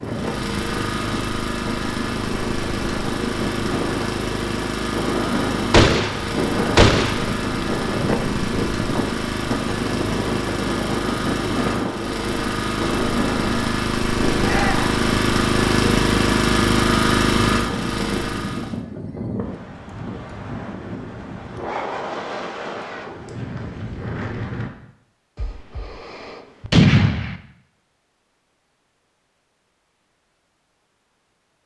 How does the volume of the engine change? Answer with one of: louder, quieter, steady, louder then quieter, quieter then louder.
louder.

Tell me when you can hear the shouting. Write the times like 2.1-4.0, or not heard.
14.4-15.0.